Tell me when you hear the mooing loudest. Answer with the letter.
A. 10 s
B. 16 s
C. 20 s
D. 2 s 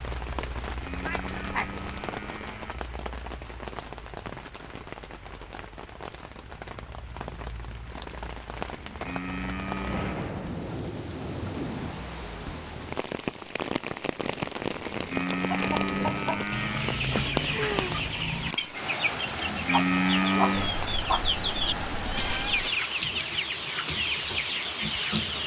C.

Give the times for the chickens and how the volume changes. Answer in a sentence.
You can hear the chickens from 15.3 to 25.4 s, at a steady volume.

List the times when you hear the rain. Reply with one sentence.
The rain can be heard from 0.0 to 25.4 s.